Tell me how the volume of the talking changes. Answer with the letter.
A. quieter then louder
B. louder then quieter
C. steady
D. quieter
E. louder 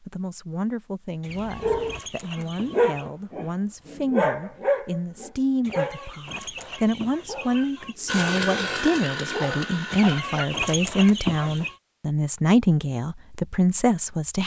E.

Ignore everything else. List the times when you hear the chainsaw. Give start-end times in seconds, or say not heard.
8.1-10.2.